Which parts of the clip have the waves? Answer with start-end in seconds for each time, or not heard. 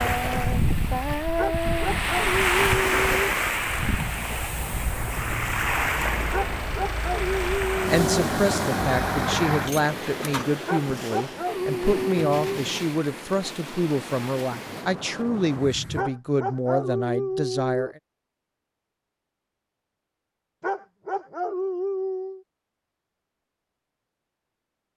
0.0-16.1.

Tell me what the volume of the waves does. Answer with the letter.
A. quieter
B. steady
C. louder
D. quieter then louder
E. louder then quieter
A.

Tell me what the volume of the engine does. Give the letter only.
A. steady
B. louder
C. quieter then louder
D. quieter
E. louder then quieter
B.